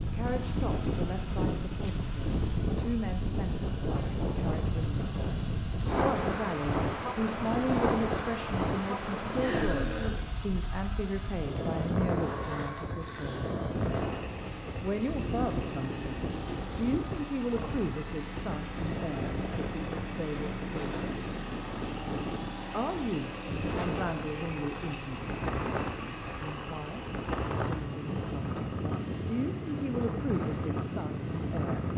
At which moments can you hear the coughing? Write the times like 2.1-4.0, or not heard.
9.4-10.3.